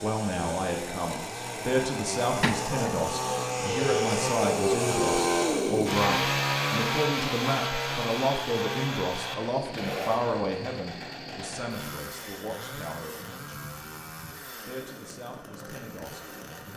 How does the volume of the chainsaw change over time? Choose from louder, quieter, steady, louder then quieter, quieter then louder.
louder then quieter.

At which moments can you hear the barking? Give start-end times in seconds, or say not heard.
not heard.